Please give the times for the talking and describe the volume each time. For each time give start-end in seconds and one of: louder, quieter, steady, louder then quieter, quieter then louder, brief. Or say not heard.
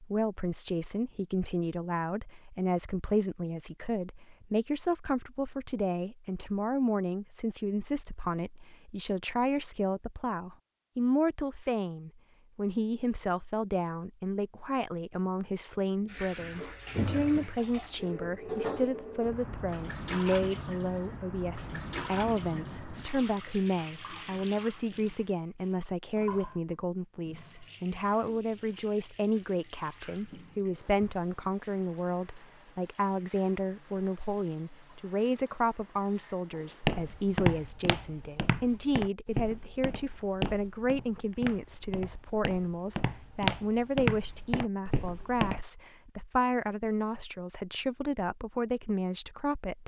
0.0-49.8 steady.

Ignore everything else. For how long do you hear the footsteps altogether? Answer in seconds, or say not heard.
9 s.